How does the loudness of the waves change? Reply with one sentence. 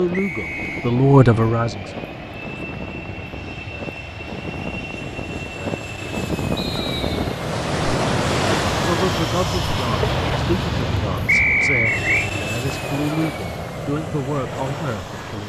The loudness of the waves goes up, then down.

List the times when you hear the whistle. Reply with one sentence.
The whistle can be heard from 0.1 to 0.9 s, from 6.5 to 7.2 s and from 11.2 to 12.3 s.